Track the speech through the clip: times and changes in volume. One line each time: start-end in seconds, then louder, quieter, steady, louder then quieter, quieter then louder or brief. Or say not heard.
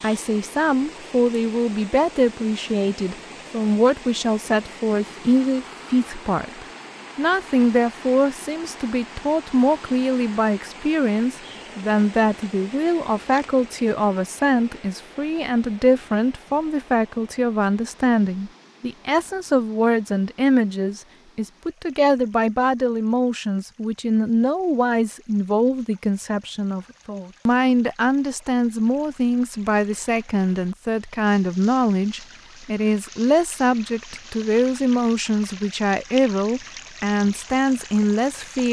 0.0-38.6 steady.